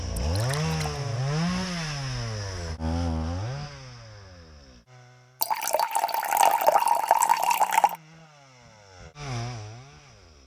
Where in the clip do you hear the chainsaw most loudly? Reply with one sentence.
The loudest moment of the chainsaw is at 1 second.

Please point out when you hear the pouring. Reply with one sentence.
You can hear the pouring from 0.3 to 0.9 s and from 5.4 to 8.0 s.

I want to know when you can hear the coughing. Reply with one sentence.
You can't hear the coughing here.